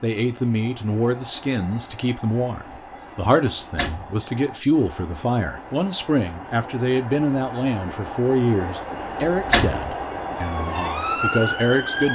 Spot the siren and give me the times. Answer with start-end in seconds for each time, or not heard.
10.3-12.0.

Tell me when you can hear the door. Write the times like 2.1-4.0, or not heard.
3.5-4.2, 8.9-9.8.